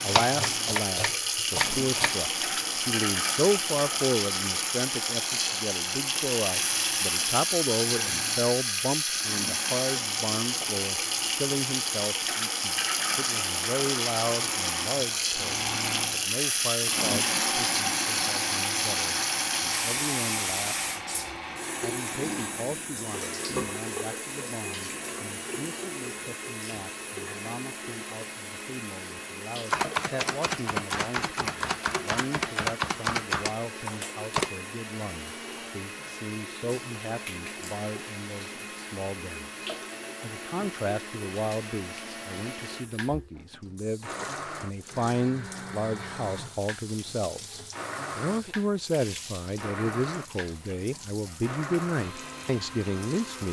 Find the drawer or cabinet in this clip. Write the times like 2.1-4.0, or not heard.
not heard.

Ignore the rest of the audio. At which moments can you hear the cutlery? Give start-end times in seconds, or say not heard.
not heard.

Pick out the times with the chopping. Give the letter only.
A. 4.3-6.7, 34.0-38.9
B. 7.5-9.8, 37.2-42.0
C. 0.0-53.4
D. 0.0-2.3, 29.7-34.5
D.